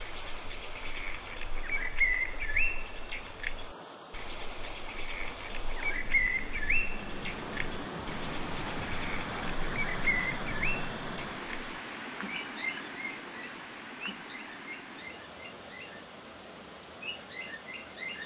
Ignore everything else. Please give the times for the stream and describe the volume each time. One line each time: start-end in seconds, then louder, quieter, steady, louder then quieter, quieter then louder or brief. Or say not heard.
0.0-18.2 louder then quieter.